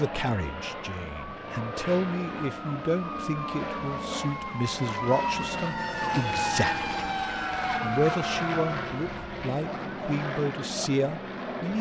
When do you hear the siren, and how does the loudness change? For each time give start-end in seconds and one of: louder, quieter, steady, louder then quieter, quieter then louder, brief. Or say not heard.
0.2-11.4 louder then quieter.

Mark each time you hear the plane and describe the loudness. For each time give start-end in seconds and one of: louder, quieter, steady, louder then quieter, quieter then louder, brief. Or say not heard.
0.0-11.7 steady.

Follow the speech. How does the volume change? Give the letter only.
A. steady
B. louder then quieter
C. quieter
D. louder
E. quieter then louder
A.